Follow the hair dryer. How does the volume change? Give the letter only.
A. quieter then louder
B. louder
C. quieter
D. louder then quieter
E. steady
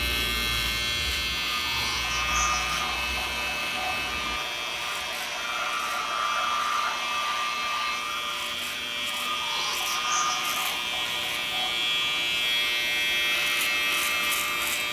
C.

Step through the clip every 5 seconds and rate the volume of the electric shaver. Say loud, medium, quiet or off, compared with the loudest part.
loud, medium, loud.